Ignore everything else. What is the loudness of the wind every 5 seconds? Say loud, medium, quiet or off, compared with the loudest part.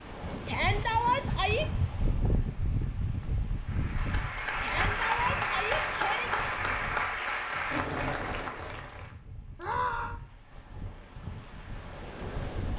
loud, medium, medium.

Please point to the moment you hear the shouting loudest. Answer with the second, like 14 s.
1 s.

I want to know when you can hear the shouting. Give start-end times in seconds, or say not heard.
0.5-1.6, 4.6-6.3, 9.6-10.2.